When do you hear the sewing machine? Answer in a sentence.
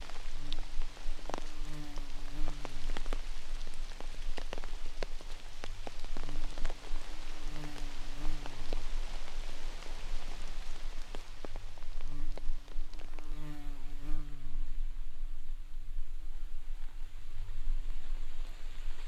The sewing machine can't be heard in this clip.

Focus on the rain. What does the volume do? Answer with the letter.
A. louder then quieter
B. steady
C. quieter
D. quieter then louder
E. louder
C.